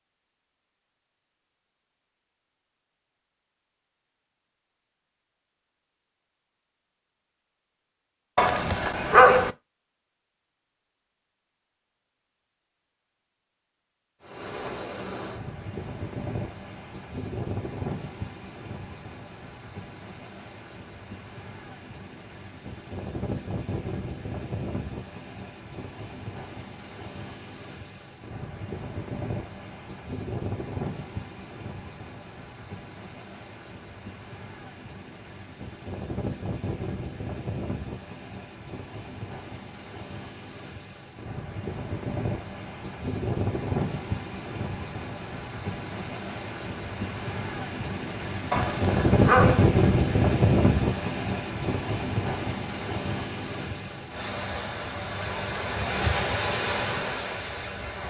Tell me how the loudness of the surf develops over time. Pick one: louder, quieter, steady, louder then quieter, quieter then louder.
louder.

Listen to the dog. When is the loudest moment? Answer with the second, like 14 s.
9 s.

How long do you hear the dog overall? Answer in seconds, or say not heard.
2 s.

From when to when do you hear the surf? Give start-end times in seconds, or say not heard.
14.2-58.0.